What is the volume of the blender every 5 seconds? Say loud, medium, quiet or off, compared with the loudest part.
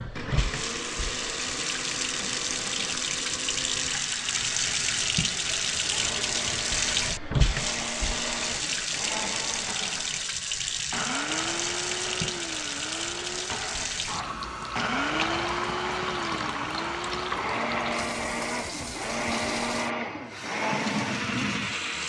medium, medium, loud, loud, loud.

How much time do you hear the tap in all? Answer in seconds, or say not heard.
22 s.